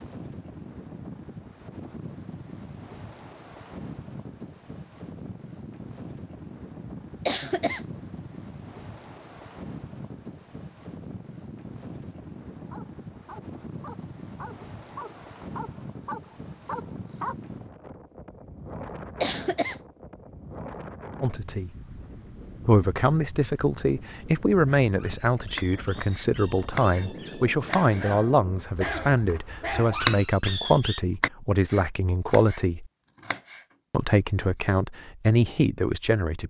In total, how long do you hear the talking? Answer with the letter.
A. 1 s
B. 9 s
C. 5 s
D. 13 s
D.